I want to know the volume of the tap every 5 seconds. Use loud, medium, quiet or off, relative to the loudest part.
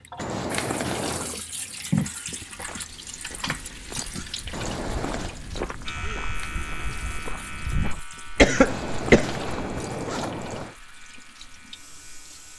loud, medium, quiet.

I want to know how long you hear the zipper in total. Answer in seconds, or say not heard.
4 s.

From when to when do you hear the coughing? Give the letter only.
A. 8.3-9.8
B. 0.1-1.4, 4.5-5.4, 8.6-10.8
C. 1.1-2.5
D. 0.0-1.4
A.